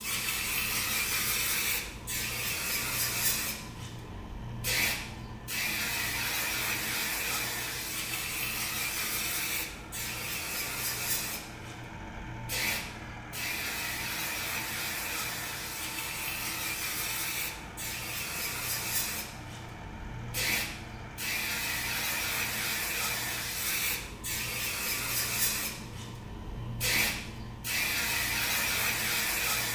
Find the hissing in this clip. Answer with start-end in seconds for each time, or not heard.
0.0-29.7.